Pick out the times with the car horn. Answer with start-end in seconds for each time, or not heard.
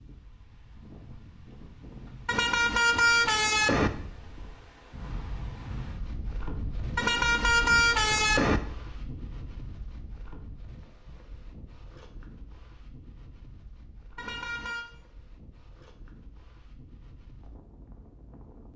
2.2-3.9, 7.0-8.6, 14.2-14.9.